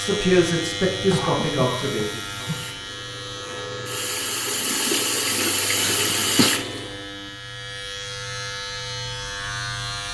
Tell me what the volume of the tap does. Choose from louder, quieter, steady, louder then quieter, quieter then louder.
louder.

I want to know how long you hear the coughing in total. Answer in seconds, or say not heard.
2 s.